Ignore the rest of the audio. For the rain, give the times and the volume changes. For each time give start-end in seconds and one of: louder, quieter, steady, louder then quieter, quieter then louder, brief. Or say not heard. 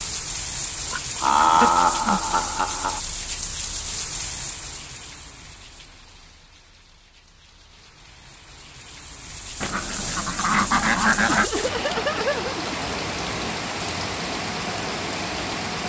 0.0-15.8 quieter then louder.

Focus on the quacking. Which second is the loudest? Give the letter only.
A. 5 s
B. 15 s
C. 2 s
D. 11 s
D.